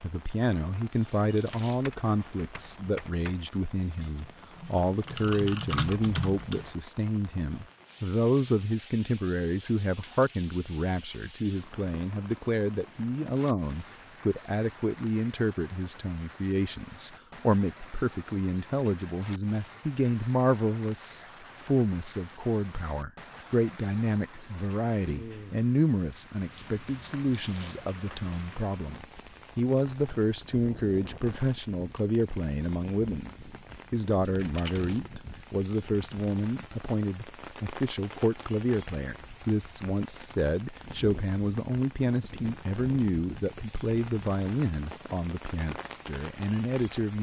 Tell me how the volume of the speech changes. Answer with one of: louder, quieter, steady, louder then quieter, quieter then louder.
steady.